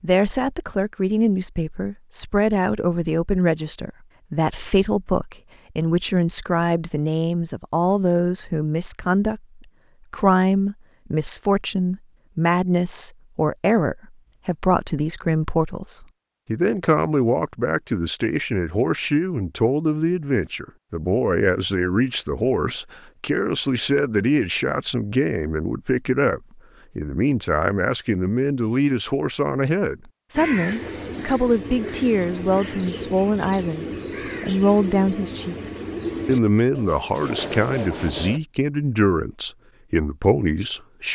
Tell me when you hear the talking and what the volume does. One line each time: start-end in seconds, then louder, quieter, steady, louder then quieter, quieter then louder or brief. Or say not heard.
0.0-41.0 steady.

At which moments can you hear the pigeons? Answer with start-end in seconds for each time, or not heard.
30.3-38.4.